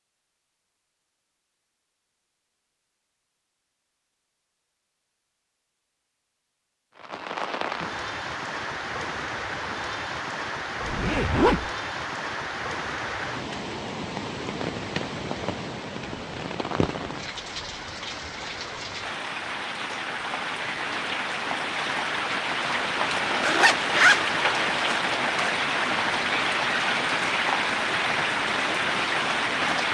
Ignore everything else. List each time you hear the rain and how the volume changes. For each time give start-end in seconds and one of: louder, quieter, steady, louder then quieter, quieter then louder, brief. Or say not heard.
7.0-29.8 louder.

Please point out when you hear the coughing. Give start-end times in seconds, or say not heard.
not heard.